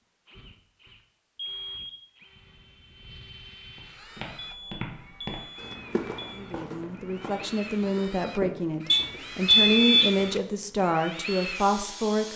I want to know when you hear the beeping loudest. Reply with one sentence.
The volume of the beeping peaks at 10 seconds.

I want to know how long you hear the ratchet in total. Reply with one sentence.
You can't hear the ratchet here.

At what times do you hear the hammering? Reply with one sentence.
You can't hear the hammering here.